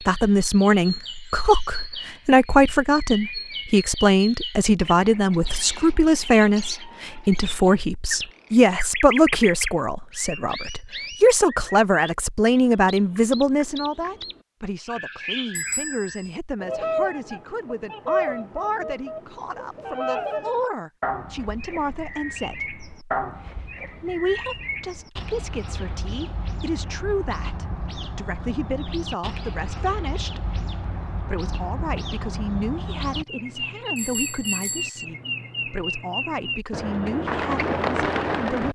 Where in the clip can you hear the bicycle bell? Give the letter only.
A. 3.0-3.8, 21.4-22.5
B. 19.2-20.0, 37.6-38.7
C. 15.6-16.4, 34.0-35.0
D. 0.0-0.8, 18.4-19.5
C.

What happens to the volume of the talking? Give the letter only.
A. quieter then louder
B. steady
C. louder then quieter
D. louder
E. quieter
E.